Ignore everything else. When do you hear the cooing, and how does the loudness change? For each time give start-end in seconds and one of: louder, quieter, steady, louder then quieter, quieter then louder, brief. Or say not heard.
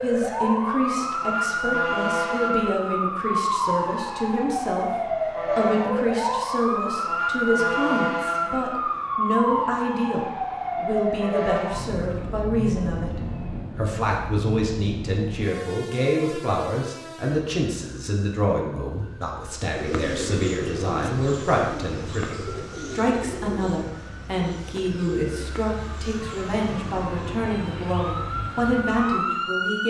19.6-27.4 quieter.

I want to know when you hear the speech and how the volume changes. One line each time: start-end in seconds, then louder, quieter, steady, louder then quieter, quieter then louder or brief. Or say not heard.
0.0-29.8 steady.